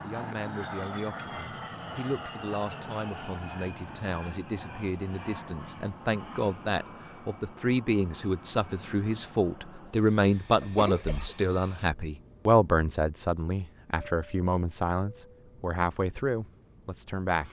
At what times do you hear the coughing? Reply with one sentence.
You can hear the coughing from 10.6 to 11.3 s.